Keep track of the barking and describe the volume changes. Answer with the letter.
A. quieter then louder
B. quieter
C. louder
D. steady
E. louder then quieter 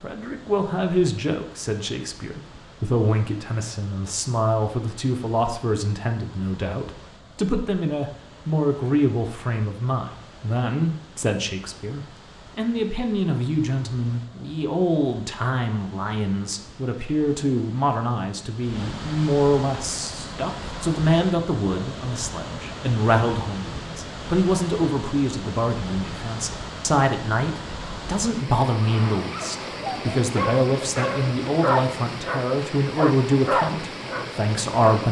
C.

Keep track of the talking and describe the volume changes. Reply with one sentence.
The loudness of the talking stays about the same.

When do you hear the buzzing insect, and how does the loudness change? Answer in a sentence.
The buzzing insect can't be heard in this clip.